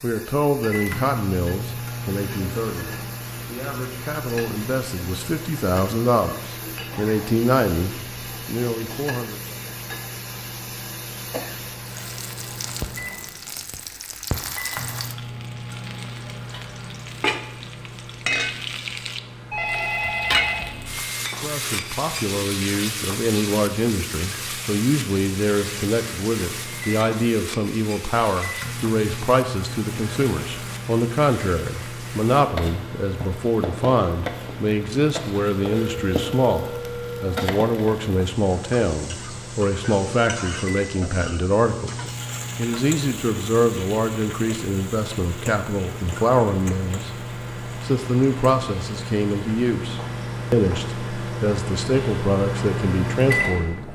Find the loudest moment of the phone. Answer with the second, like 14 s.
20 s.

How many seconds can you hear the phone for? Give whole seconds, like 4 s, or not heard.
3 s.